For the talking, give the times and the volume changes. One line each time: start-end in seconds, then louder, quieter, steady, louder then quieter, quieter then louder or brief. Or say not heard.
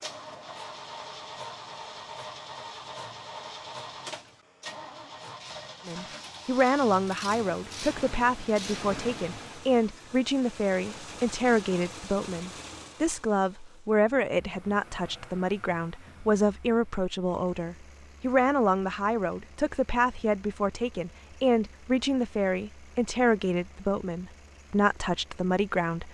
5.8-26.0 steady.